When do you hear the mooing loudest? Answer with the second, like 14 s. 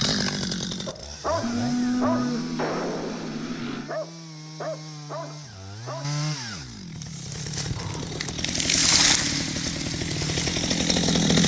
2 s.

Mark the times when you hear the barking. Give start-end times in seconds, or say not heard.
0.8-6.0.